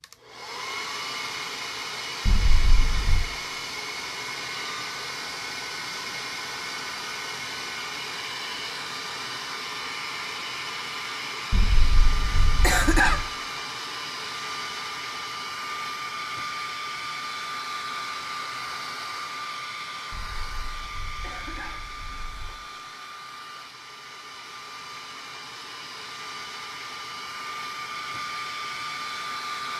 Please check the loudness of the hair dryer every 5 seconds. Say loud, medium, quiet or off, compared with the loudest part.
loud, loud, loud, loud, medium, loud.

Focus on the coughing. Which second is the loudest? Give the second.
13 s.